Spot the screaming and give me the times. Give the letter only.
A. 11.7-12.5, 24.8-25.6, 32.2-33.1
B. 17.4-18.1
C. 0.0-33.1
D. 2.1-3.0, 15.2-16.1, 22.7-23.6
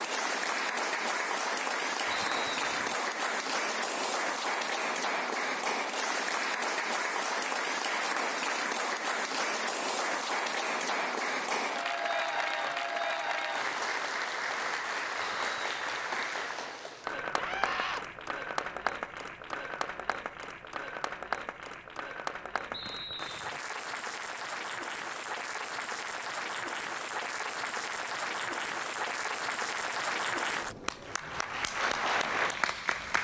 B.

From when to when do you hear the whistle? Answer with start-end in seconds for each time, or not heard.
2.1-3.0, 15.2-16.1, 22.7-23.6.